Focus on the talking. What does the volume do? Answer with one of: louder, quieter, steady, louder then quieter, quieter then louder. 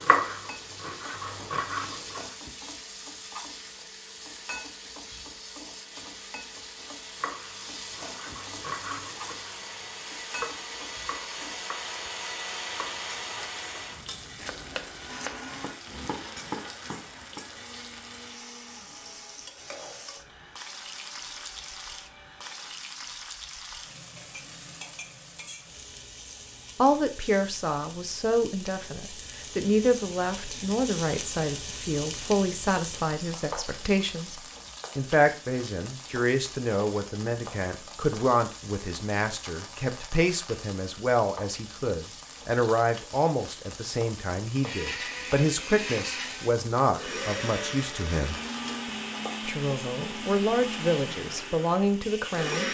steady.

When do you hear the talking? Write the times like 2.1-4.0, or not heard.
26.8-48.4, 49.5-52.6.